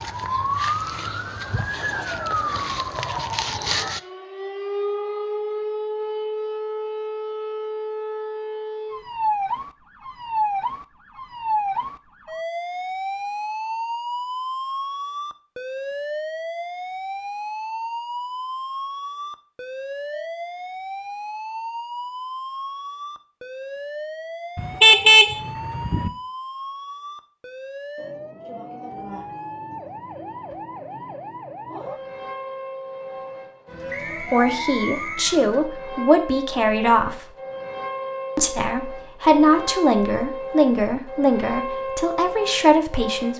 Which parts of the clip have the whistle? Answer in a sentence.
The whistle can be heard from 33.9 to 35.4 s.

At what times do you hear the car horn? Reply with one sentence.
The car horn can be heard from 24.6 to 26.1 s.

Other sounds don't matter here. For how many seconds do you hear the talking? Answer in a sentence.
The talking can be heard for 8 seconds in total.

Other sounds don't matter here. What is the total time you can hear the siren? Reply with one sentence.
You can hear the siren for 43 seconds altogether.